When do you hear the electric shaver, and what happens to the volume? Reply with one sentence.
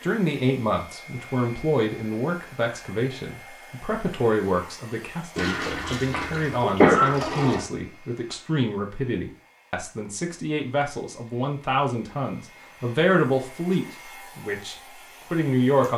You can't hear the electric shaver here.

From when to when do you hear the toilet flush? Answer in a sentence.
You can hear the toilet flush from 5.3 to 7.7 s.